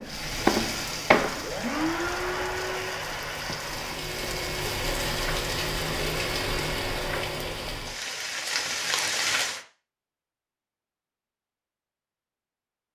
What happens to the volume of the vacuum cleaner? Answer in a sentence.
The loudness of the vacuum cleaner goes down.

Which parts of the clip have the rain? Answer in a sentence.
The rain can be heard from 0.0 to 9.7 s.